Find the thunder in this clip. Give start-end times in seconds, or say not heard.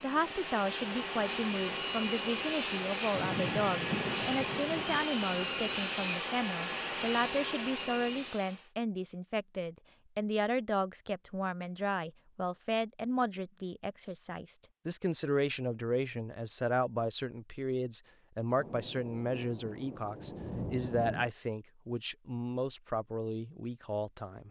3.1-5.0, 18.6-21.3.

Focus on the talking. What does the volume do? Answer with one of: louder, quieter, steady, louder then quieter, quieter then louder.
steady.